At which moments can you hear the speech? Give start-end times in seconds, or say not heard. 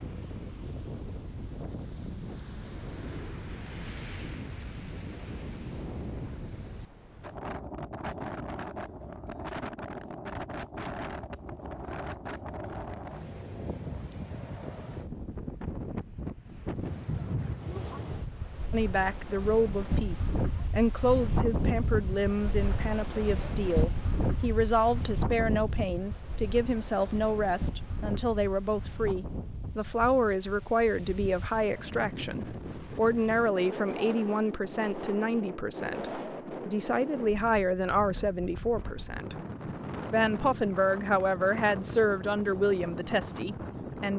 18.7-39.4, 40.1-44.1.